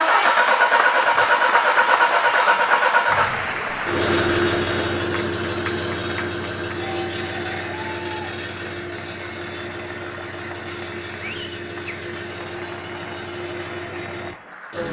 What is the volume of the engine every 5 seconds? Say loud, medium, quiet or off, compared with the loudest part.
loud, medium, quiet.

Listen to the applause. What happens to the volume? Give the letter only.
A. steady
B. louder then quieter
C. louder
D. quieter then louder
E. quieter
E.